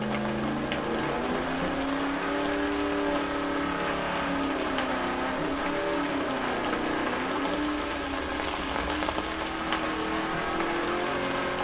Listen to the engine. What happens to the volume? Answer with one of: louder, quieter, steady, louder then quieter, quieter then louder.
steady.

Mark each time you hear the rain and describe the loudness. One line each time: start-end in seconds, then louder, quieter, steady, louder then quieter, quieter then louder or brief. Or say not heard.
0.0-11.5 steady.